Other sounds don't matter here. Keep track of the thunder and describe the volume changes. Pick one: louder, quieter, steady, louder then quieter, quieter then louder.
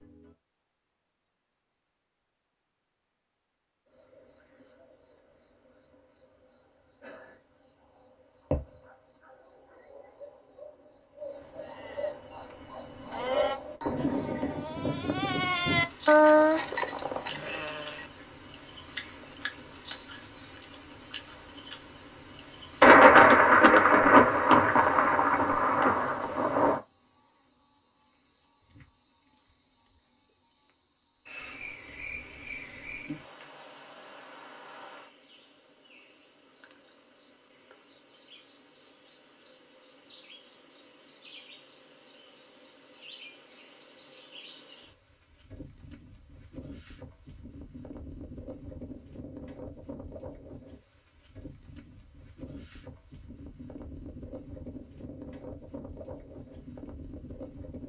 quieter.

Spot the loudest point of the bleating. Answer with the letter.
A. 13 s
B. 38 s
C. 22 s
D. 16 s
D.